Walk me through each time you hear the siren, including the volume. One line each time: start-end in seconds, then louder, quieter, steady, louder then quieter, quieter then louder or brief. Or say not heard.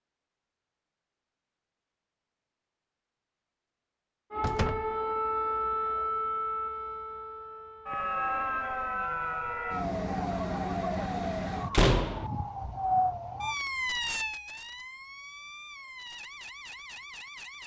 4.3-17.6 quieter.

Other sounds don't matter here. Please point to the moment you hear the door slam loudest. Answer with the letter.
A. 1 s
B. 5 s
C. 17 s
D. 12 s
D.